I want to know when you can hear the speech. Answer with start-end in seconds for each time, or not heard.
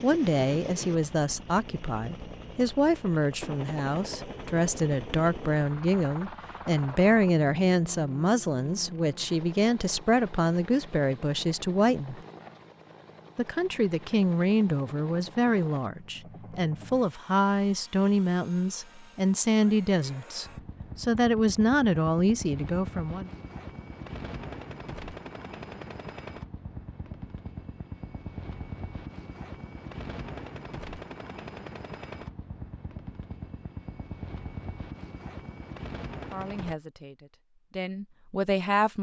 0.0-12.2, 13.3-23.3, 36.3-38.9.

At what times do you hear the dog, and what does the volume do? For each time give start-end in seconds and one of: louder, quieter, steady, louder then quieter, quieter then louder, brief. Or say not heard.
not heard.